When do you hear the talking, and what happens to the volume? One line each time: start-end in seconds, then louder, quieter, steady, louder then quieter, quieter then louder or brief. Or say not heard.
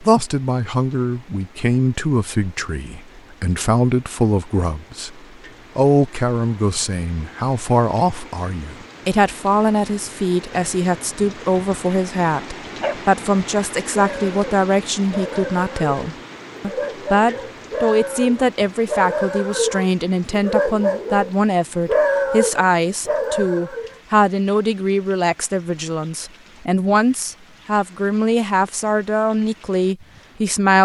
0.0-30.8 steady.